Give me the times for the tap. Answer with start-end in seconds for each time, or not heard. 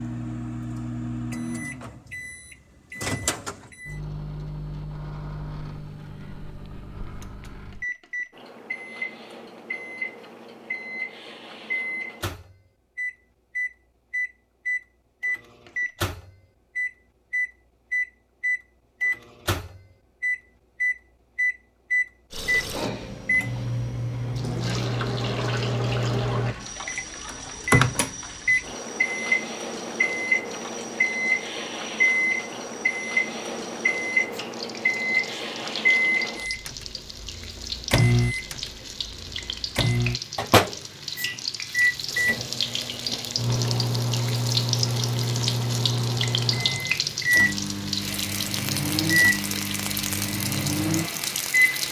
22.3-51.8.